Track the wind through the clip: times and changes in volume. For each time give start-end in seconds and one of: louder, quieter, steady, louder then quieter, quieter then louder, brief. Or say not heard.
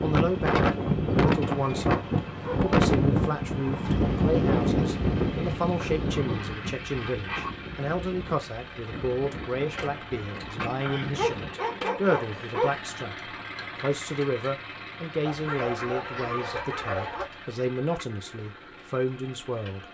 0.0-11.6 quieter.